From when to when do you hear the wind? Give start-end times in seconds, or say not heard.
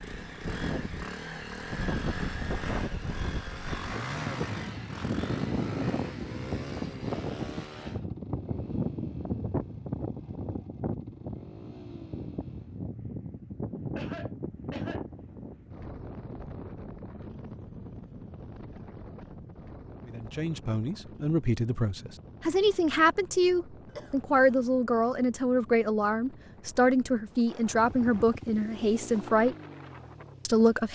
0.0-30.6.